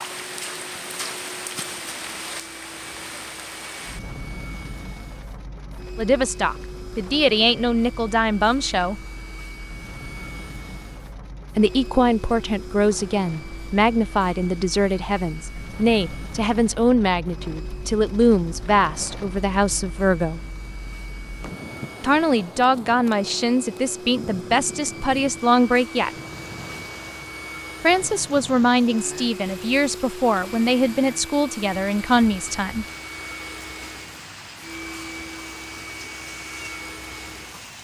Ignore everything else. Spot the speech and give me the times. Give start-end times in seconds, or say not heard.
6.0-9.0, 11.6-20.4, 22.0-26.1, 27.8-32.9.